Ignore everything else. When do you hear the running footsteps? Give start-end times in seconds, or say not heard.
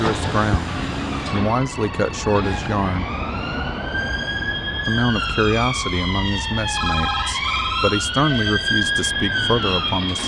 not heard.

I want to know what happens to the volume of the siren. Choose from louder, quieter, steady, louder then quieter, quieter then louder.
louder.